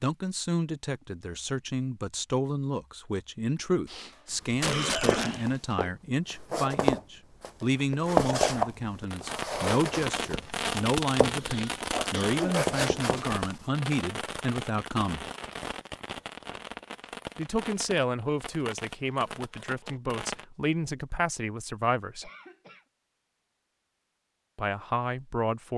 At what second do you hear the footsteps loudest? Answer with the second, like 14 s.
8 s.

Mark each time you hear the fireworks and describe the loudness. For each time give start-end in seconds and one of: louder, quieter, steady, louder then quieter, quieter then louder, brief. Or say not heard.
9.1-20.4 quieter.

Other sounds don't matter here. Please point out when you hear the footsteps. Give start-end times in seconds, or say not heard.
4.3-13.7.